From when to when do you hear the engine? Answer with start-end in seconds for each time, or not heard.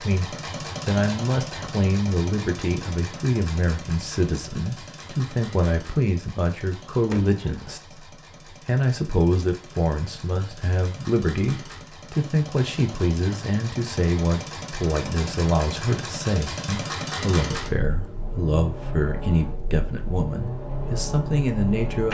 0.0-22.0.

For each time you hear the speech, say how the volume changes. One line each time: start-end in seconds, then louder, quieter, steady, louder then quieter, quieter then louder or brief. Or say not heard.
0.0-22.0 steady.